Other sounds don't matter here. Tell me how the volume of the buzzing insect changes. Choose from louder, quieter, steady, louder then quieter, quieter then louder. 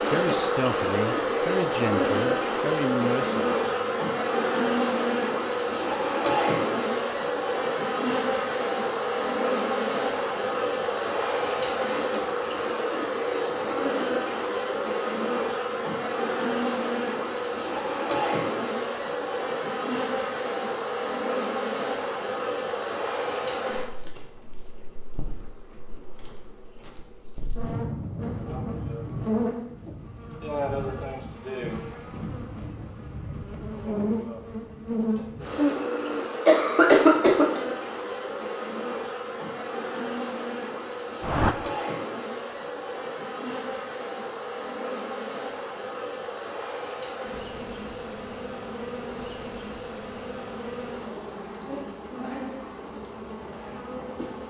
quieter.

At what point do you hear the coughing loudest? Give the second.
37 s.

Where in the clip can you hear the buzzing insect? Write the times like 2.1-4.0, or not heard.
0.0-54.4.